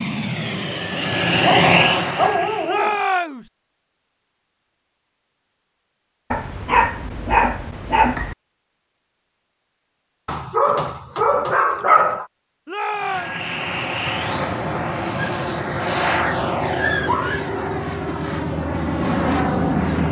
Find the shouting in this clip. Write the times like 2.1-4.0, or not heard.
2.6-3.5, 12.7-13.3.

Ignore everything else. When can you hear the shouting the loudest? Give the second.
3 s.